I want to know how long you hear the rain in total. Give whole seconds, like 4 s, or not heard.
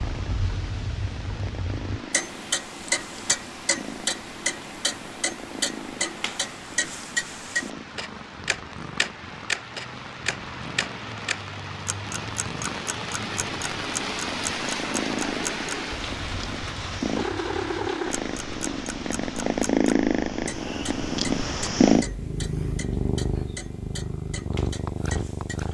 20 s.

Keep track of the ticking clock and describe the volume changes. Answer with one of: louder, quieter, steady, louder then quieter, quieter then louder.
quieter.